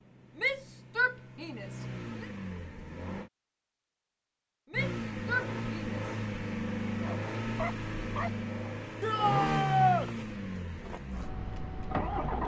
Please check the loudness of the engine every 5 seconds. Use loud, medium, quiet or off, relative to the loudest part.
medium, loud, loud.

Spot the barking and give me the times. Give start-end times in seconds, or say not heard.
7.0-8.7.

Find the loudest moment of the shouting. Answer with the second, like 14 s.
10 s.